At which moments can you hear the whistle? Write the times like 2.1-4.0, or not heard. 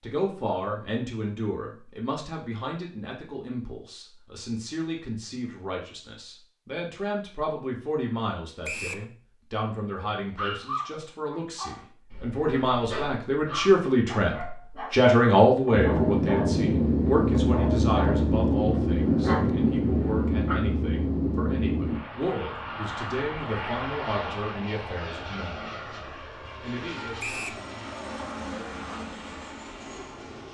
8.7-9.1, 27.2-27.6.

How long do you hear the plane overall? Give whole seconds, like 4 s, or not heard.
15 s.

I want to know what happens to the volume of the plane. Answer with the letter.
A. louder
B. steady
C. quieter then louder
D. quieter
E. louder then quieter
D.